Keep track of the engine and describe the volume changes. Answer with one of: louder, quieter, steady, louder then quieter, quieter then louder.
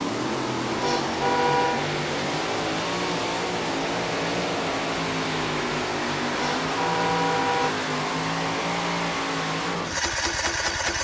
steady.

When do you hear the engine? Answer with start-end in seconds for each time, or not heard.
0.0-10.9.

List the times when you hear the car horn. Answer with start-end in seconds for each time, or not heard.
0.8-1.9, 6.3-7.8.